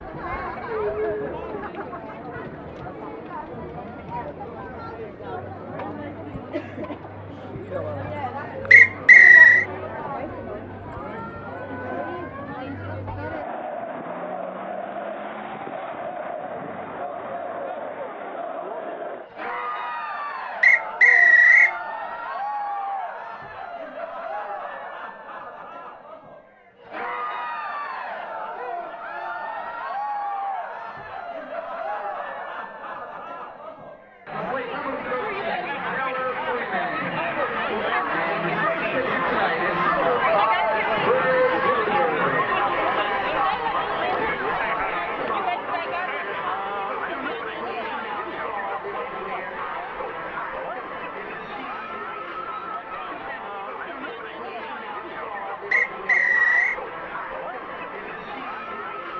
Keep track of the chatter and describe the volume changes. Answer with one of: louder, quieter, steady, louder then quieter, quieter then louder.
louder then quieter.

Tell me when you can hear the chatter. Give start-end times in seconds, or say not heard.
0.0-59.1.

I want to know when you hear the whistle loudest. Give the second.
9 s.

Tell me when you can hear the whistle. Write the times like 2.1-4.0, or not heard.
8.7-9.7, 20.6-21.8, 55.7-56.8.